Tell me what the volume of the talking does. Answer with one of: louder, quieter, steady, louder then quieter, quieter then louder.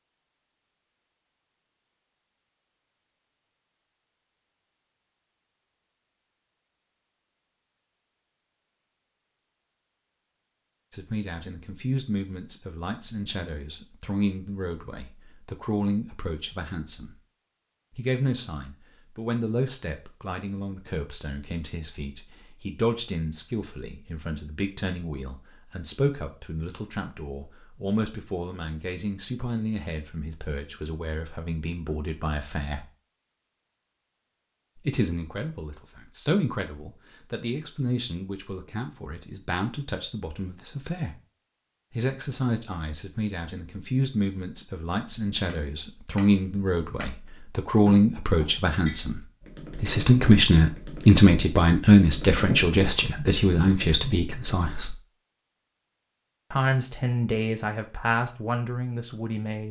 louder.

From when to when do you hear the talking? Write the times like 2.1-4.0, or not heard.
10.9-17.2, 17.9-32.9, 34.8-41.2, 41.9-55.0, 56.5-59.6.